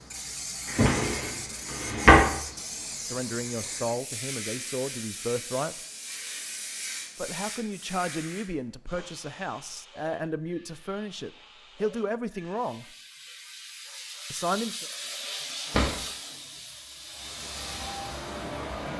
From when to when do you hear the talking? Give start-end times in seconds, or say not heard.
3.0-5.8, 7.2-12.8, 14.3-14.8.